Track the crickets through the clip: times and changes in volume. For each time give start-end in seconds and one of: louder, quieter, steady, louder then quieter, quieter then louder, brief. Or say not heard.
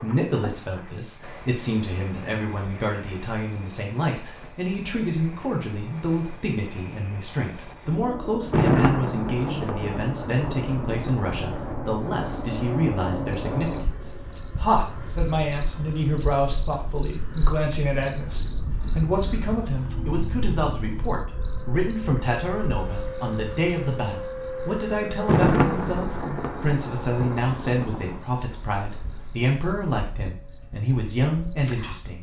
12.9-32.1 quieter.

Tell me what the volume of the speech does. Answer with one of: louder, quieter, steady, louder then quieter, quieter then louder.
steady.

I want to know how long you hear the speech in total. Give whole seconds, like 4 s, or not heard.
32 s.